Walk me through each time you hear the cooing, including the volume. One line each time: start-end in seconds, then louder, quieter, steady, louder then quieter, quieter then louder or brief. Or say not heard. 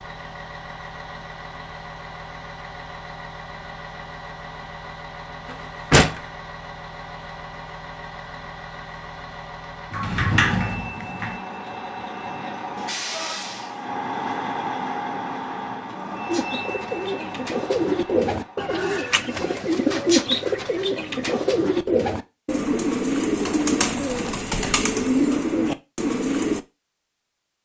16.2-26.6 steady.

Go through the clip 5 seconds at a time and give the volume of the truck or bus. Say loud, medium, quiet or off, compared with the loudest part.
medium, medium, loud, loud, off, off.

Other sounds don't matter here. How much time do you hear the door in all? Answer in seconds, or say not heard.
3 s.